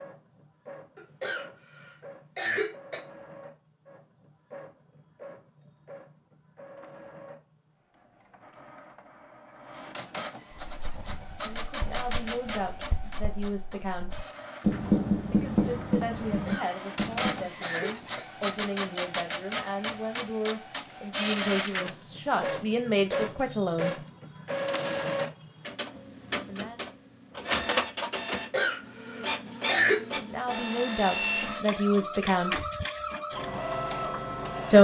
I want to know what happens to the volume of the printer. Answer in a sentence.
The loudness of the printer goes up.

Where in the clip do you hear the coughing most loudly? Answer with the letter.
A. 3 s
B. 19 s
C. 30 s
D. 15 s
C.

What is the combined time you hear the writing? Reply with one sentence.
You can hear the writing for 7 seconds altogether.